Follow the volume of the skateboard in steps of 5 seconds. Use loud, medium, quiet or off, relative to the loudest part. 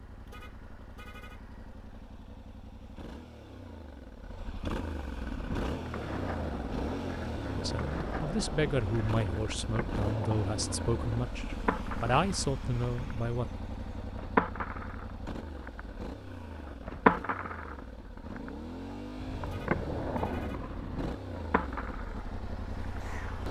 off, medium, loud, loud, medium.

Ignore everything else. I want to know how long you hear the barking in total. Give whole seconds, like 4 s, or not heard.
not heard.